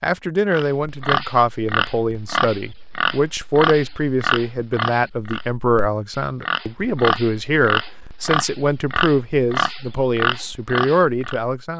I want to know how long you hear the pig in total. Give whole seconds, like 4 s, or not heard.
11 s.